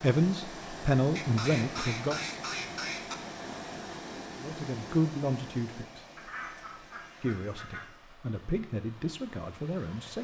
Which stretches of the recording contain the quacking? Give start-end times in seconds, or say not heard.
1.1-3.1, 6.2-7.9.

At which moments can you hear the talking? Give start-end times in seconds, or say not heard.
0.0-2.4, 4.3-6.0, 7.2-10.1.